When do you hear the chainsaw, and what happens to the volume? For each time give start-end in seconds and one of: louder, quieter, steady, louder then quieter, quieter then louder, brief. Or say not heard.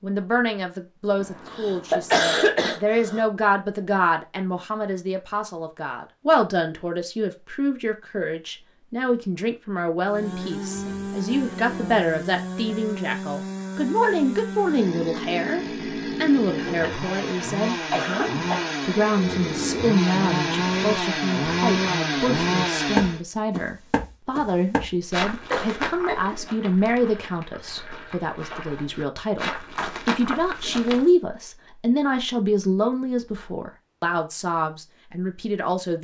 10.1-23.2 louder.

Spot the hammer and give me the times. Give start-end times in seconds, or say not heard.
not heard.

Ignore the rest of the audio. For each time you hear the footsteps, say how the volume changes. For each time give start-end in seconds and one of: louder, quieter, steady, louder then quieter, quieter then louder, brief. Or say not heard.
22.9-31.1 quieter then louder.